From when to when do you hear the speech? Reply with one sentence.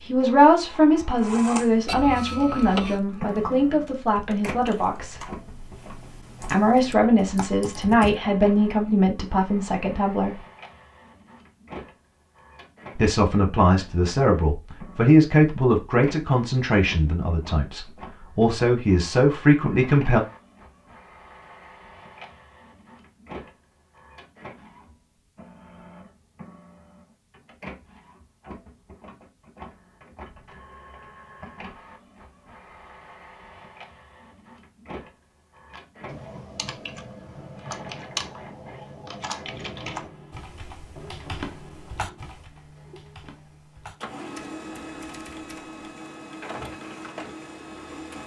The speech can be heard from 0.0 to 5.2 s, from 6.5 to 10.4 s and from 12.9 to 20.2 s.